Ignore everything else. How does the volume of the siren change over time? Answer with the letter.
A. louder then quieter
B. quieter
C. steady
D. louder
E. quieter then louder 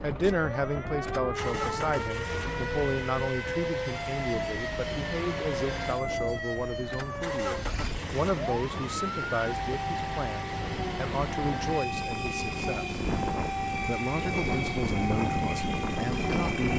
C.